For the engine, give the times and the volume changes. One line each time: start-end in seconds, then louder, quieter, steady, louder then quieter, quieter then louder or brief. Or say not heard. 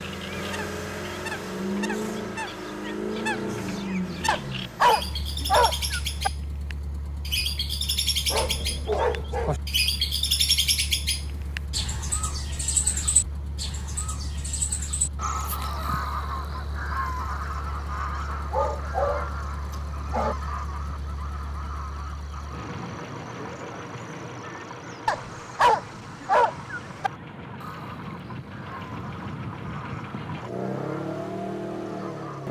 0.0-32.4 quieter then louder.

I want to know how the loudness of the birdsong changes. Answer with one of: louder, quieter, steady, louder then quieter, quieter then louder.
louder then quieter.